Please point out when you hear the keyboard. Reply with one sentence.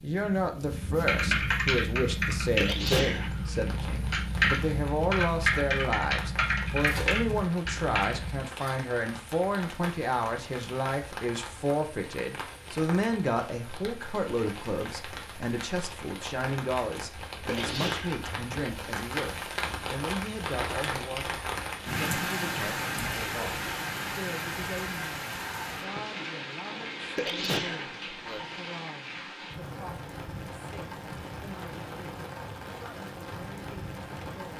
The keyboard can be heard from 1.1 to 8.4 s.